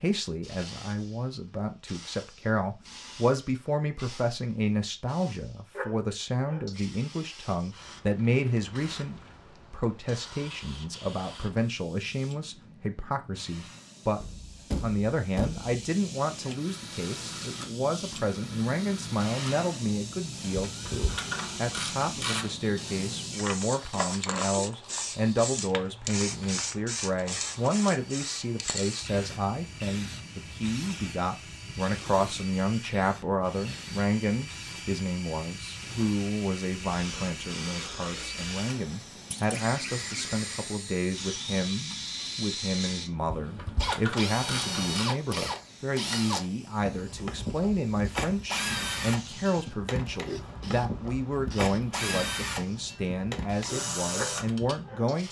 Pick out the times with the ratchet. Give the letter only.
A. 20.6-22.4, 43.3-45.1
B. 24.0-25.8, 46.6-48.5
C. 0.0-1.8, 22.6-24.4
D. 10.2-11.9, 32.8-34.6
A.